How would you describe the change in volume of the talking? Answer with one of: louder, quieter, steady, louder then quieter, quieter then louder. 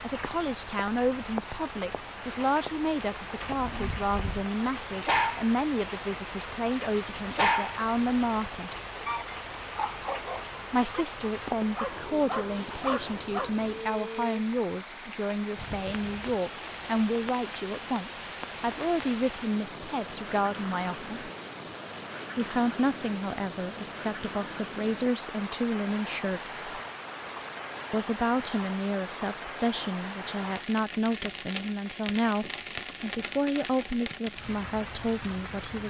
steady.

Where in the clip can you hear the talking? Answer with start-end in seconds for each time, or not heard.
0.0-8.7, 10.7-21.1, 22.4-26.8, 27.9-35.8.